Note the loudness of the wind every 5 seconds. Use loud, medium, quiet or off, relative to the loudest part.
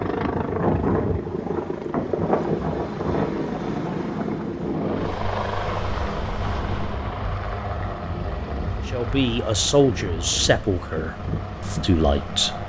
loud, medium, medium.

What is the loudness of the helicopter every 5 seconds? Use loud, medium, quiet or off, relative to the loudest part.
loud, loud, medium.